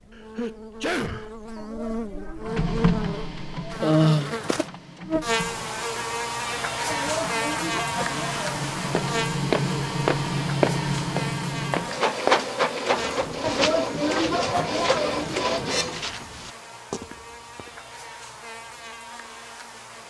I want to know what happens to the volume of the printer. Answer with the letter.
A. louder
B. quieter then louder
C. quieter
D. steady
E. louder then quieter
B.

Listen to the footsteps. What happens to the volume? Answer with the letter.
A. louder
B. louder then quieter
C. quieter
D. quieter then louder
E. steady
C.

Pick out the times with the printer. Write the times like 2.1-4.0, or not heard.
2.5-16.2.